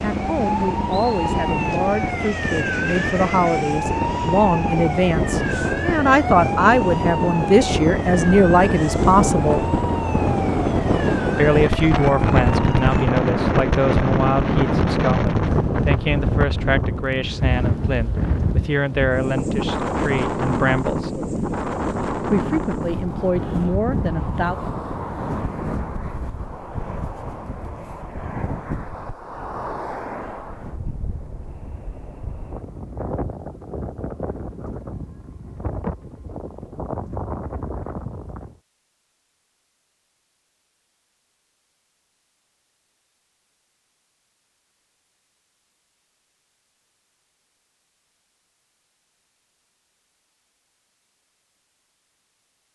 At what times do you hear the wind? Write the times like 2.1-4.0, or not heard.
0.0-38.6.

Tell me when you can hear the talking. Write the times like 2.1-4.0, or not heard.
0.0-9.7, 11.3-21.1, 22.3-24.6.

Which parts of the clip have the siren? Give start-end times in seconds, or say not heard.
0.0-13.1.